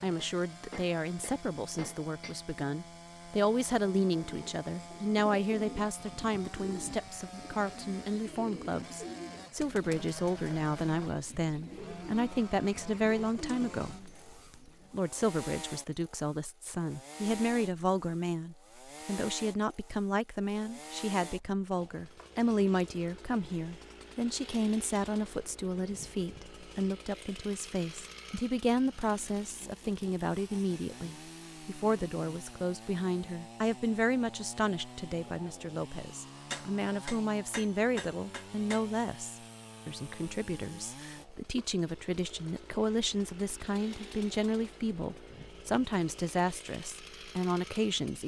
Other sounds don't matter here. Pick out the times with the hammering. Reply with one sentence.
You can hear the hammering from 0.1 to 2.5 s and from 36.5 to 38.9 s.